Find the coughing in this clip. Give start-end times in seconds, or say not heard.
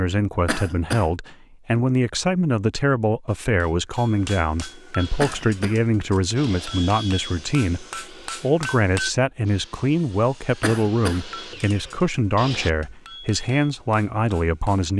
0.5-1.1, 5.2-5.8, 10.6-11.2.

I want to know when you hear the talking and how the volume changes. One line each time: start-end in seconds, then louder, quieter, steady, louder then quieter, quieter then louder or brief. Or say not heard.
0.0-14.9 steady.